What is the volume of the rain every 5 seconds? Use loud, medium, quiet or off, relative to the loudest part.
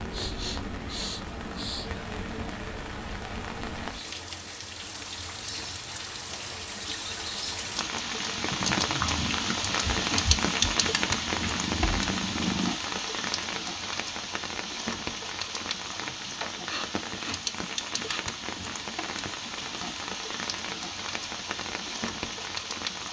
medium, loud, loud, medium, medium.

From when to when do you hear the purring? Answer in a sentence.
The purring can be heard from 8.9 to 12.8 s.